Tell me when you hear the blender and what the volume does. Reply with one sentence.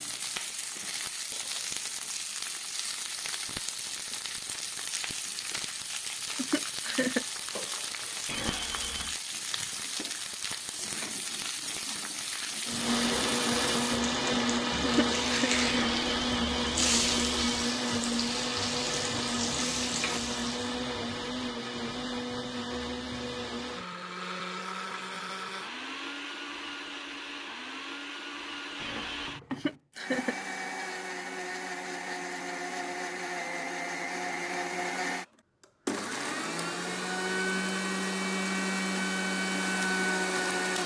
You can hear the blender from 12.7 to 40.8 s, getting quieter then louder.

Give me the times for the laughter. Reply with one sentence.
The laughter can be heard from 6.3 to 7.2 s, from 14.8 to 15.5 s and from 29.5 to 30.8 s.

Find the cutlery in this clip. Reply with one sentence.
The cutlery can't be heard in this clip.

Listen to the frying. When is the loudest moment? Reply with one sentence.
The loudest moment of the frying is at 17 seconds.